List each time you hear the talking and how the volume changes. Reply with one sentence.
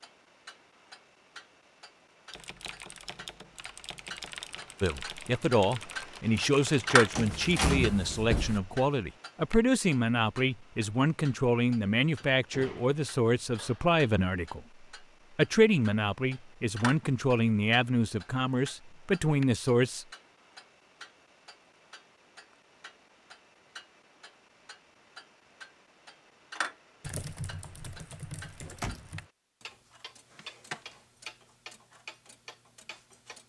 You can hear the talking from 4.8 to 20.1 s, at a steady volume.